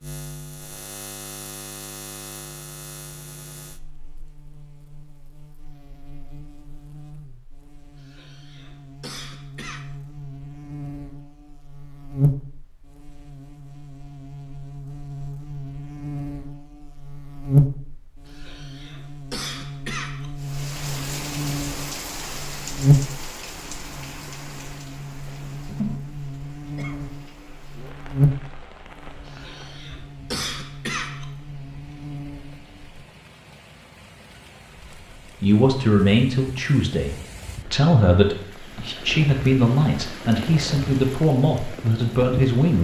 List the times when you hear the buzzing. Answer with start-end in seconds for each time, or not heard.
0.0-33.0.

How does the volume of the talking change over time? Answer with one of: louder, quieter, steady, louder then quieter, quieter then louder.
steady.